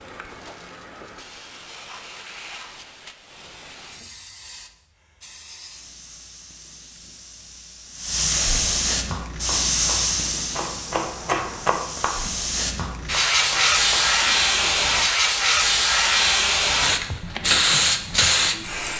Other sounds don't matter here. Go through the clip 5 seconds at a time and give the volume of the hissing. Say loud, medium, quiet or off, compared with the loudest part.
quiet, medium, loud, loud.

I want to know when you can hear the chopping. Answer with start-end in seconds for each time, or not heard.
9.1-14.8.